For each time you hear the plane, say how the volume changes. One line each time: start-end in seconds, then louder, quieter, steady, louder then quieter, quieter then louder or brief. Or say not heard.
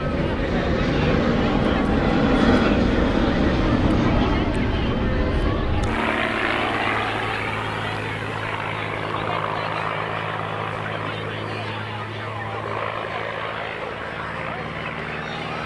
0.0-15.6 quieter.